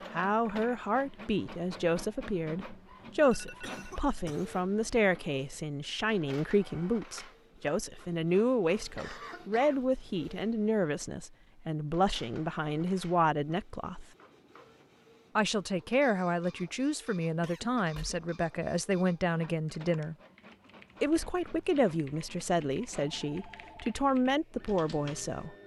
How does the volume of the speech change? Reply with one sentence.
The volume of the speech stays about the same.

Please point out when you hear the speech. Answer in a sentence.
The speech can be heard from 0.1 to 14.1 s, from 15.3 to 20.1 s and from 21.0 to 25.6 s.